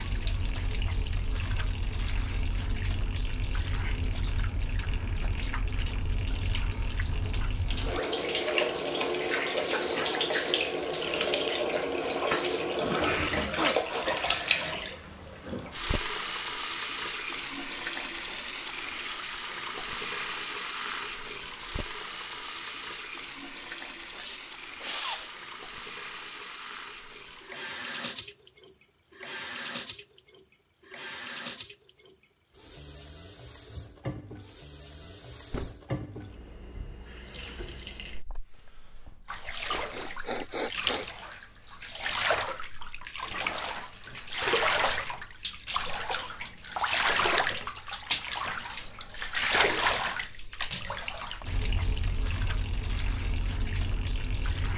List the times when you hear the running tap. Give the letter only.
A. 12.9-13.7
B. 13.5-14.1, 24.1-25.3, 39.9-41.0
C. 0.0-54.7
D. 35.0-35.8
C.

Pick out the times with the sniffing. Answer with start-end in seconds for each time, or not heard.
13.5-14.1, 24.1-25.3, 39.9-41.0.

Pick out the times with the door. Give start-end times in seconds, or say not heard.
35.0-35.8.